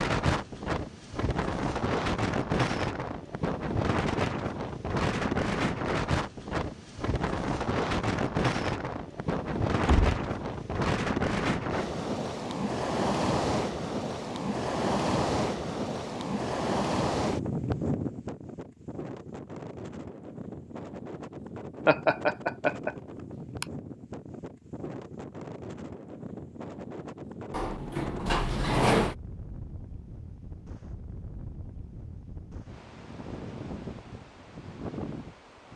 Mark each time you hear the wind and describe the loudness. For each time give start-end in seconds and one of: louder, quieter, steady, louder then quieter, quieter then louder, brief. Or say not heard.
0.0-35.7 quieter.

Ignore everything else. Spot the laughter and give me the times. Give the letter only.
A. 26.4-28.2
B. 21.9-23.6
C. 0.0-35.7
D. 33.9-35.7
B.